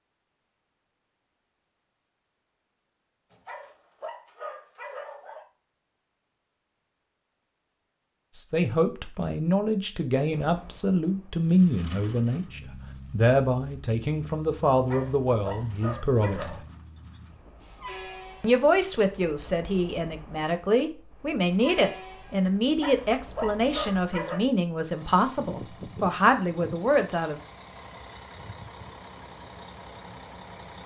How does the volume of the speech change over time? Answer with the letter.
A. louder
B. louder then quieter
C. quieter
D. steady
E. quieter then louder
D.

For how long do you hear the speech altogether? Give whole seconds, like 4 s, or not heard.
17 s.